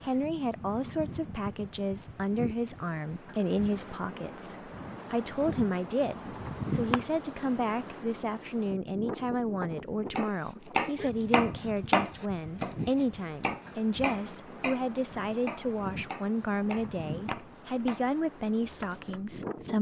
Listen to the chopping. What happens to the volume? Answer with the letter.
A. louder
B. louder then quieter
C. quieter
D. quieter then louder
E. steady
C.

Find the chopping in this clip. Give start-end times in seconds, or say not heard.
10.2-19.4.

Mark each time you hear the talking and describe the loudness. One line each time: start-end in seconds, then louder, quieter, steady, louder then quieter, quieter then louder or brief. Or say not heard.
0.0-19.7 steady.